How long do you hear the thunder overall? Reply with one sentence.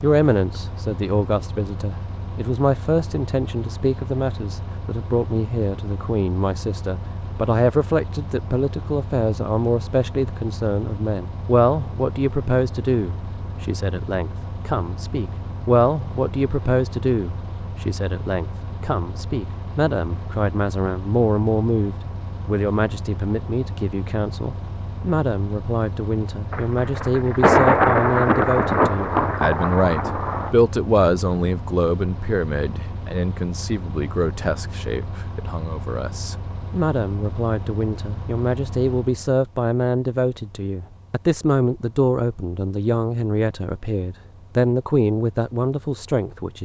The thunder can be heard for 4 seconds in total.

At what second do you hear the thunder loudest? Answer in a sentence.
The loudest moment of the thunder is at 28 seconds.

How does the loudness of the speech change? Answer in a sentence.
The volume of the speech stays about the same.